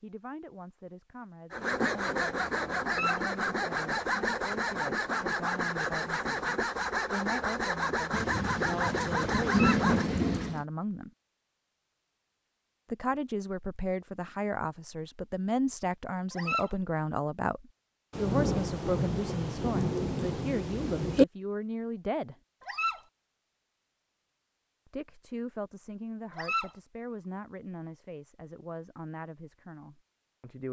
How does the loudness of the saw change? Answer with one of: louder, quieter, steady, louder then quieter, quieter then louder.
steady.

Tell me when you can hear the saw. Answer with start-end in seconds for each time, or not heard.
1.5-10.1.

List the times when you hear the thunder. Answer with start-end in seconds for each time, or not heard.
8.1-10.7, 18.1-21.2.